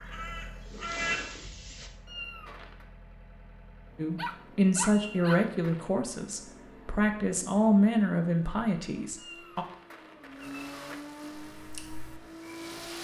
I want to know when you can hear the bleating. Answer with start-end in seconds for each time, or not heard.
not heard.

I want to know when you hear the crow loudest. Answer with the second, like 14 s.
1 s.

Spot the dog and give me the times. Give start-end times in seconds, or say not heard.
4.2-5.5.